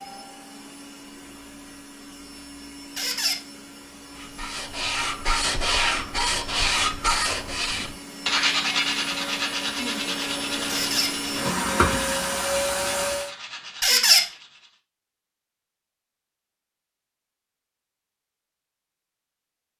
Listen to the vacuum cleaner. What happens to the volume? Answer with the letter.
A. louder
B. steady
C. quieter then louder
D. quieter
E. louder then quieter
A.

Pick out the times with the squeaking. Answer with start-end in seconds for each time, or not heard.
3.0-3.4, 10.7-11.2, 13.8-14.2.